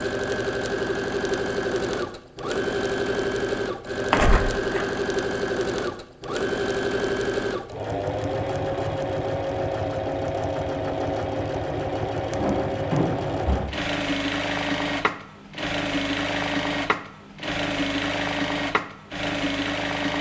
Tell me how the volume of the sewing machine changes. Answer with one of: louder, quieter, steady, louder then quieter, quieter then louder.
steady.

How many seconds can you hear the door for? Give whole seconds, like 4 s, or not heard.
2 s.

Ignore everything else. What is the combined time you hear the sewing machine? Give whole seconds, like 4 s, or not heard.
20 s.